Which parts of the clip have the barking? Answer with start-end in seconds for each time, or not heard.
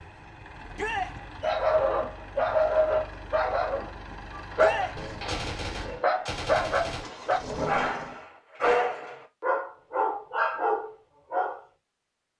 1.4-11.6.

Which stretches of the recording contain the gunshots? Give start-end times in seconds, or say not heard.
5.0-7.8.